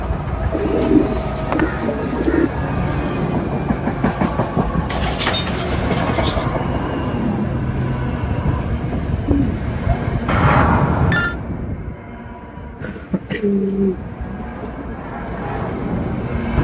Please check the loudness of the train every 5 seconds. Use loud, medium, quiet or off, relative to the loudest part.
loud, loud, medium, loud.